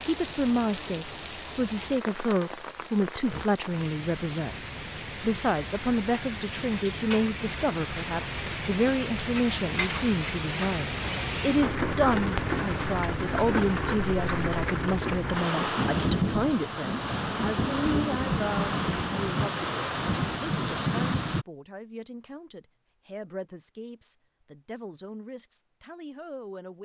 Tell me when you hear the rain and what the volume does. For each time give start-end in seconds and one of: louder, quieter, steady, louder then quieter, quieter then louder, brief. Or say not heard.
0.0-21.4 louder.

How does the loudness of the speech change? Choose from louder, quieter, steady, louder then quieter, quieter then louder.
quieter.